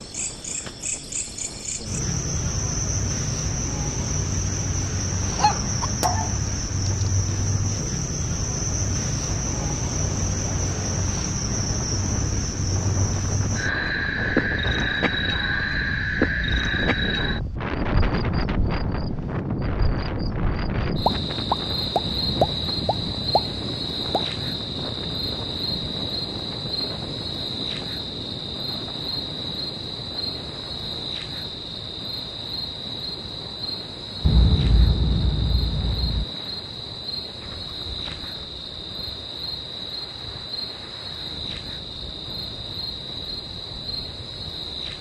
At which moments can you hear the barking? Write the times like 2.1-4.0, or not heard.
5.3-7.1.